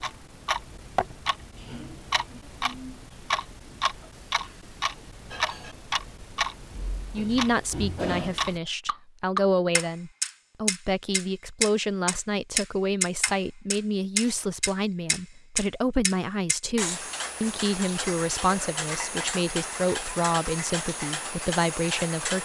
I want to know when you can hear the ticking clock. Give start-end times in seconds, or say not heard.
0.0-22.4.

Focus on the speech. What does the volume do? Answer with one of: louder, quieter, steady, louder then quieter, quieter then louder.
steady.